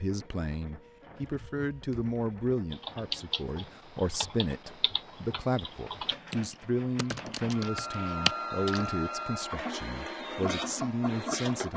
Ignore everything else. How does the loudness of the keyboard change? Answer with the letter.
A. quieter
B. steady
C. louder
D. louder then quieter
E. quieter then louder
E.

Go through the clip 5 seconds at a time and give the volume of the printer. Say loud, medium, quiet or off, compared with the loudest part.
quiet, loud, loud.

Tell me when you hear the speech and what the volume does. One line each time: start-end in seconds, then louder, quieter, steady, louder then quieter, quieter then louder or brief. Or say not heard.
0.0-11.7 steady.